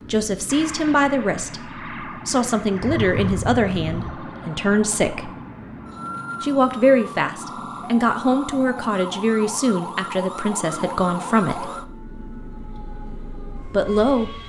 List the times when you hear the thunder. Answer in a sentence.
You can hear the thunder from 2.7 to 4.1 s.